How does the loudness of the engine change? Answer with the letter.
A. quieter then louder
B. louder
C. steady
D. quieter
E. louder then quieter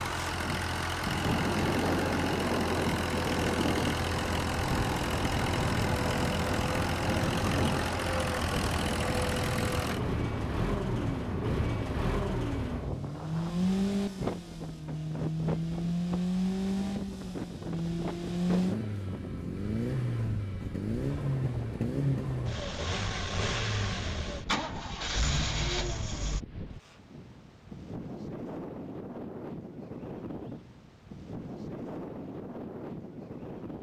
C.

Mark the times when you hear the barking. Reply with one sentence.
You can't hear the barking here.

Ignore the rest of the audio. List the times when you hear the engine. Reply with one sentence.
The engine can be heard from 0.0 to 26.4 s.